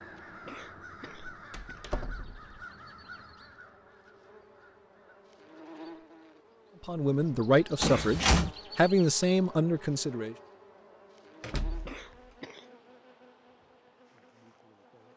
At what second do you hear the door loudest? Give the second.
8 s.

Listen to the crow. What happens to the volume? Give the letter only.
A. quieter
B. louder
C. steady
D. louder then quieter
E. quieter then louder
A.